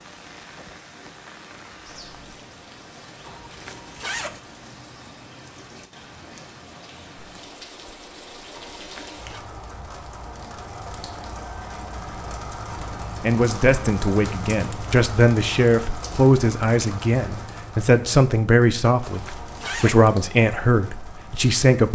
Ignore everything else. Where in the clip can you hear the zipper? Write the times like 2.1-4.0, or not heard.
3.2-4.4, 8.5-9.4, 19.1-20.0.